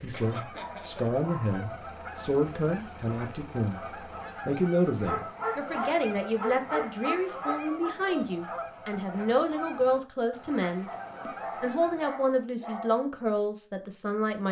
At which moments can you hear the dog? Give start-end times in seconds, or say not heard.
0.2-1.6, 5.0-7.9, 10.8-13.0.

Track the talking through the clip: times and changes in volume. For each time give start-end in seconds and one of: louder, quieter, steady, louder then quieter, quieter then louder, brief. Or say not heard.
0.0-14.4 steady.